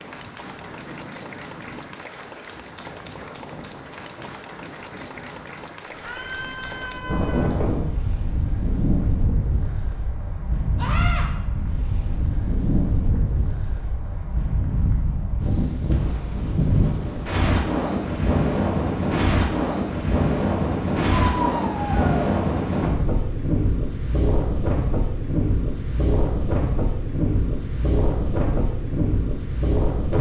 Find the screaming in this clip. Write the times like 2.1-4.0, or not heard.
6.0-7.5, 10.8-11.2, 21.4-22.3.